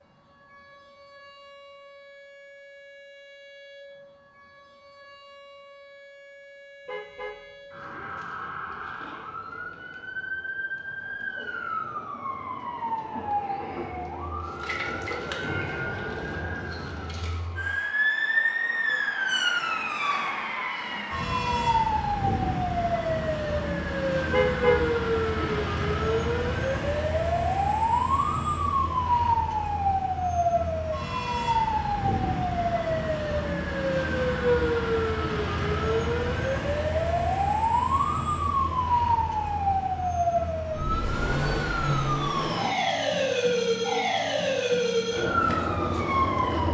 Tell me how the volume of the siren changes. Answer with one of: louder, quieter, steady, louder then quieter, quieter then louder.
louder.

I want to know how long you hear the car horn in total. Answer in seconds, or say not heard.
3 s.